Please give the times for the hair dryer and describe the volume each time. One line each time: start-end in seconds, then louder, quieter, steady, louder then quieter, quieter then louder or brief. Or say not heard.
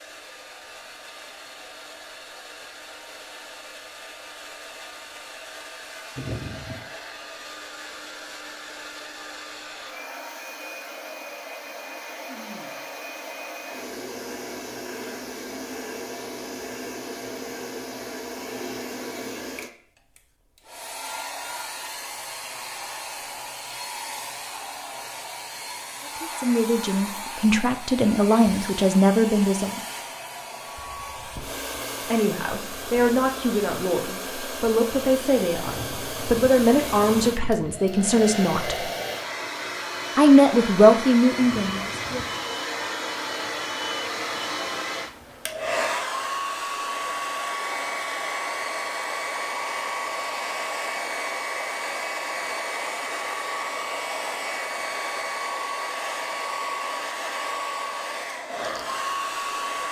0.0-59.8 louder.